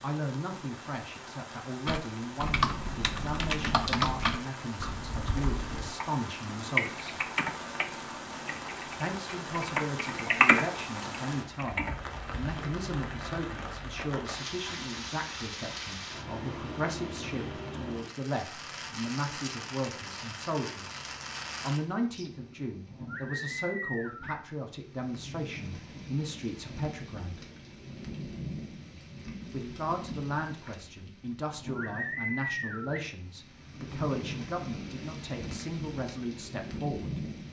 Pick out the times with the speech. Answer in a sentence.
The speech can be heard from 0.0 to 7.2 s, from 8.9 to 21.0 s, from 21.6 to 27.4 s and from 29.5 to 37.2 s.